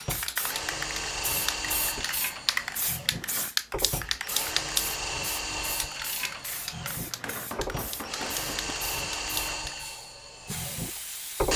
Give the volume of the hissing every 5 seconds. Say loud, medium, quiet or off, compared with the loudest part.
loud, medium, medium.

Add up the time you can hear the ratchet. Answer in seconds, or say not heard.
3 s.